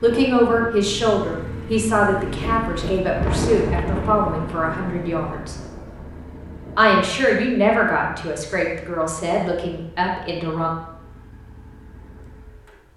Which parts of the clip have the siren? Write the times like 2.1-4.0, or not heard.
not heard.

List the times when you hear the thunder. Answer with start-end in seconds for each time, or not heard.
3.0-7.0.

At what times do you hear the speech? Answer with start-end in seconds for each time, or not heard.
0.0-5.7, 6.8-10.7.